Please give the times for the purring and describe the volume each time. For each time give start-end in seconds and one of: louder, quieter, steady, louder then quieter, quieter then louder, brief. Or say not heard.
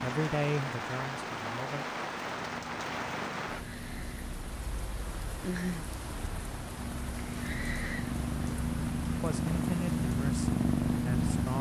0.0-11.5 louder.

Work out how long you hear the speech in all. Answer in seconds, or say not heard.
4 s.